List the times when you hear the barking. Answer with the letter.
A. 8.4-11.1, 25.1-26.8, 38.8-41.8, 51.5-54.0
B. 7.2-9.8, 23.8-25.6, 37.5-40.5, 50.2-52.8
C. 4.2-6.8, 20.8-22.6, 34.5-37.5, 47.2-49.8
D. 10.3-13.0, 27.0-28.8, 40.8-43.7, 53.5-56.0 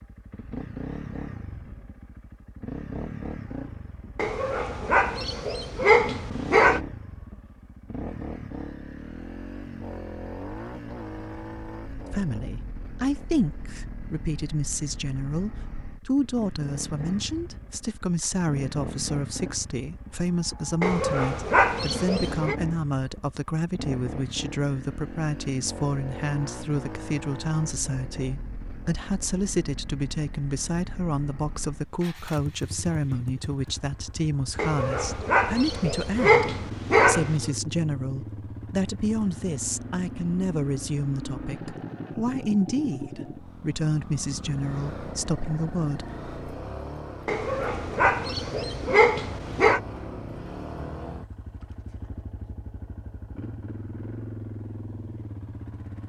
C.